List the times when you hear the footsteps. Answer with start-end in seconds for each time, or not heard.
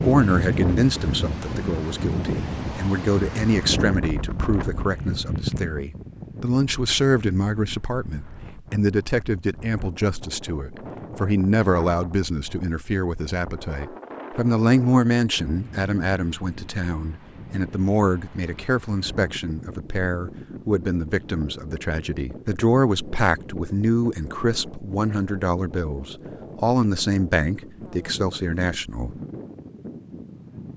not heard.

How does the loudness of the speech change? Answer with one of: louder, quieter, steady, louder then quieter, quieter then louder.
steady.